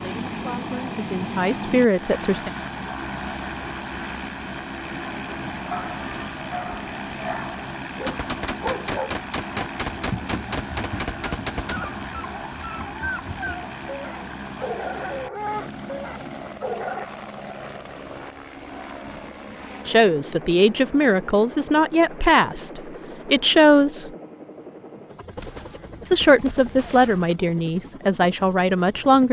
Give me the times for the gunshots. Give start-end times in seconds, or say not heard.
8.1-11.8, 25.4-27.4.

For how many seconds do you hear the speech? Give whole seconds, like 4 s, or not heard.
10 s.